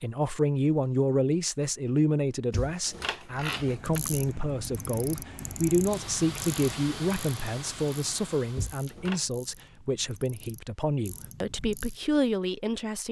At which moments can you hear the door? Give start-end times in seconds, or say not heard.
2.5-4.0, 8.6-9.2.